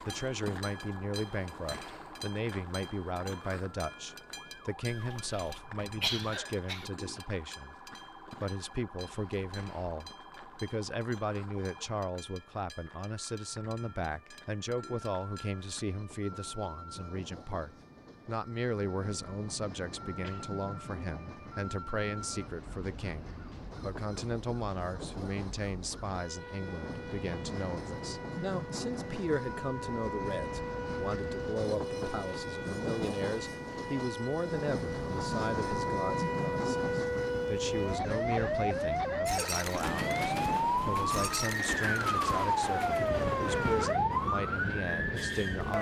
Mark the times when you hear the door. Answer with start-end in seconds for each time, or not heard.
not heard.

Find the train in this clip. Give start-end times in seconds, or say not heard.
0.0-45.7.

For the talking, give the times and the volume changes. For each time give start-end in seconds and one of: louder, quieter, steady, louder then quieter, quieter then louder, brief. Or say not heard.
0.0-45.7 steady.